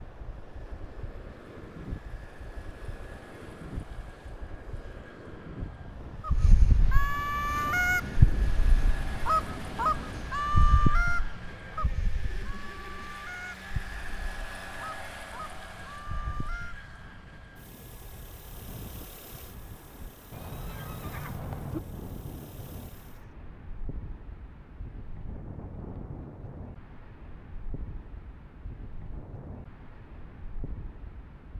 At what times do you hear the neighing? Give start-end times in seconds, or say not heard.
11.4-13.2, 20.3-21.8.